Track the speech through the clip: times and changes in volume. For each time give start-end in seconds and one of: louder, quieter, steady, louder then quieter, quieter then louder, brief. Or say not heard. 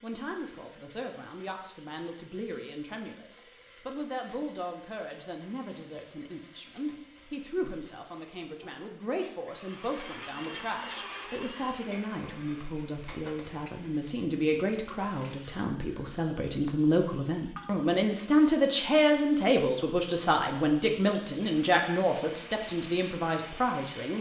0.0-24.1 louder.